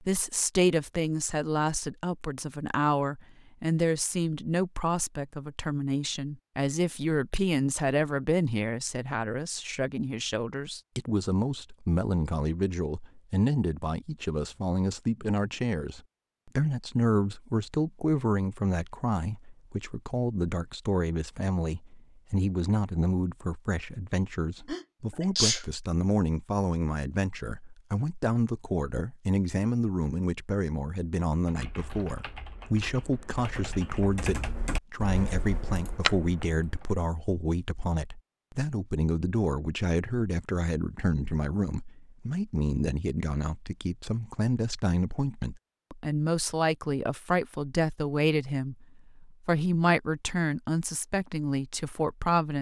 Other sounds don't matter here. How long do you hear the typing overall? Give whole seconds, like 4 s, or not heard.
6 s.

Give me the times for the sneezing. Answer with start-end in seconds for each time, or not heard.
24.6-25.6.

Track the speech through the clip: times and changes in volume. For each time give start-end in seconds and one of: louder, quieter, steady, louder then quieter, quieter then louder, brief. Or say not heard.
0.0-52.5 steady.